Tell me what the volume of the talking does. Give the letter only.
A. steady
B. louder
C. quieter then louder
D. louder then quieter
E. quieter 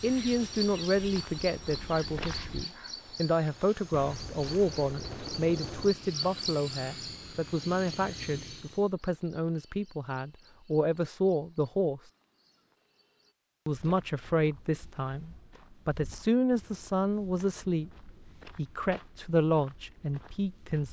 A.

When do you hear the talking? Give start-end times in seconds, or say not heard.
0.0-12.0, 13.7-20.8.